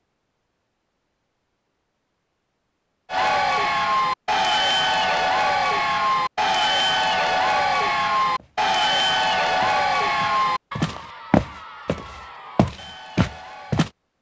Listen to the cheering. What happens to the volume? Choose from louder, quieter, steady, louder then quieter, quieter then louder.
quieter.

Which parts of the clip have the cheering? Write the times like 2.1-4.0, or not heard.
3.1-13.8.